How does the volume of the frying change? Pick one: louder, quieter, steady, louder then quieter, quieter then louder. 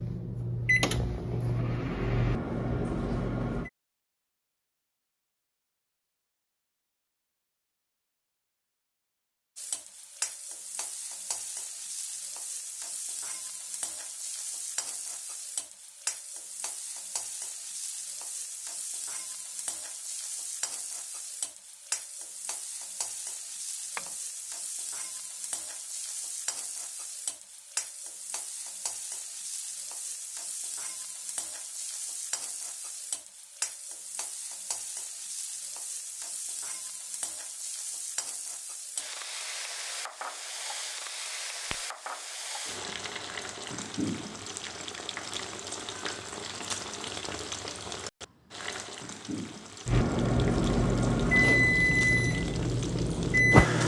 steady.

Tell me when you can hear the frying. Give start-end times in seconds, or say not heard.
9.6-53.8.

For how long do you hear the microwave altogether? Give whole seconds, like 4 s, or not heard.
8 s.